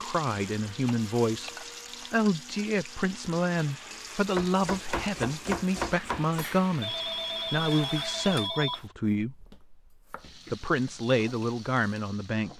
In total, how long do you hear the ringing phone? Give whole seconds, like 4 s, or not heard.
2 s.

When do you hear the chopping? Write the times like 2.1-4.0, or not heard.
0.8-1.5, 4.3-6.5, 9.1-10.3.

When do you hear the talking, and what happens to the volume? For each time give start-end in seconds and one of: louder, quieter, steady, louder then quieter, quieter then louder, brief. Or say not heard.
0.0-1.5 brief
2.1-9.6 steady
10.5-12.5 brief.